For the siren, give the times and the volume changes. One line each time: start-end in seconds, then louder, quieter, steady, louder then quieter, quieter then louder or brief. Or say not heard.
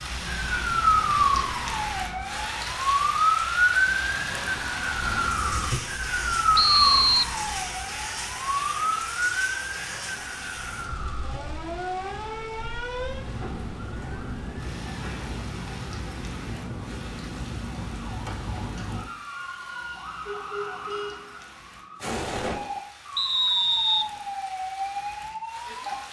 0.0-26.0 quieter.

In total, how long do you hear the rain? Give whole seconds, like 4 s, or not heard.
26 s.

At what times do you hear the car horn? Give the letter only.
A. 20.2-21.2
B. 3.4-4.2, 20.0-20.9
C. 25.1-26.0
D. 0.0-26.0
A.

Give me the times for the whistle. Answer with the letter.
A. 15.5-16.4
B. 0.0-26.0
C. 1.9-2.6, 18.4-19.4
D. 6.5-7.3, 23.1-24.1
D.